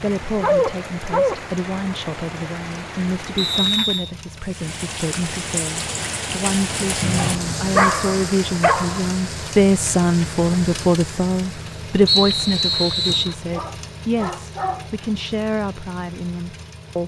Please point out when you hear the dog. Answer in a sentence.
You can hear the dog from 0.4 to 1.4 s, from 7.2 to 9.1 s and from 13.5 to 14.9 s.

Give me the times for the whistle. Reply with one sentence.
The whistle can be heard from 3.4 to 4.1 s, from 7.0 to 7.8 s and from 12.1 to 13.3 s.